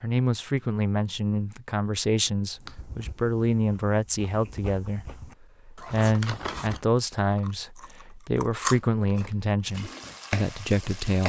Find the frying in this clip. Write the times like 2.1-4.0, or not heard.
9.7-11.2.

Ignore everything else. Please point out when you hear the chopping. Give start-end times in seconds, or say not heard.
not heard.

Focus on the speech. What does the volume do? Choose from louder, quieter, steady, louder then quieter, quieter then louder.
steady.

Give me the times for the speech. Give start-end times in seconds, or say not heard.
0.0-11.2.